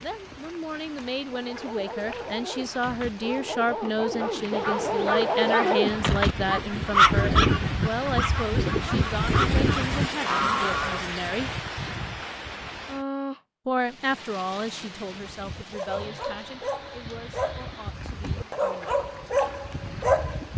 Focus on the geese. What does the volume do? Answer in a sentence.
The loudness of the geese goes up.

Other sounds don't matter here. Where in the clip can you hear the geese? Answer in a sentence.
You can hear the geese from 4.4 to 11.1 s.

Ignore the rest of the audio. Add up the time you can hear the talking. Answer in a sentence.
You can hear the talking for 17 seconds altogether.